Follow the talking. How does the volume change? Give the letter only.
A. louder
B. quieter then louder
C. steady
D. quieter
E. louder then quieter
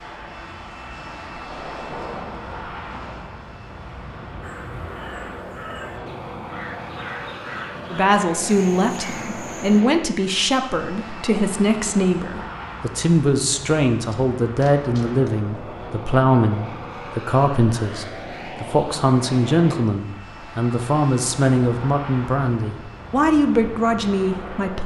C.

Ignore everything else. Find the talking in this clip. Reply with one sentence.
You can hear the talking from 7.9 to 24.8 s.